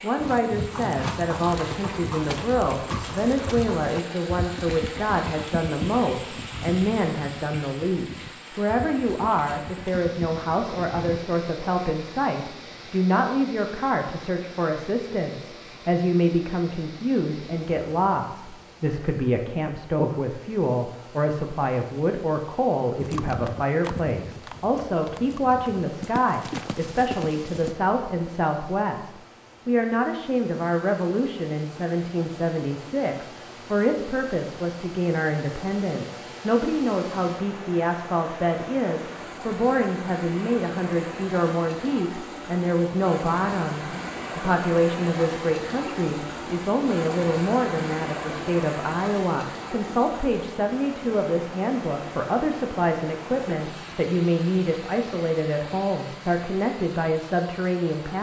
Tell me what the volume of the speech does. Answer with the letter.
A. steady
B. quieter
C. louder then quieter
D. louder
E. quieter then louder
A.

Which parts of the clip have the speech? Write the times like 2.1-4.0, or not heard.
0.0-58.1.